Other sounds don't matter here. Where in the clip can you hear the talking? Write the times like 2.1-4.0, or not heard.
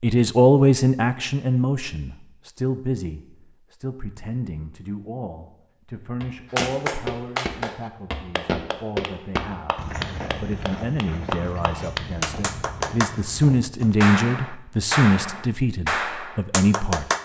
0.0-17.1.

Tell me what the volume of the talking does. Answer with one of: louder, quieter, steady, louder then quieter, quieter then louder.
quieter then louder.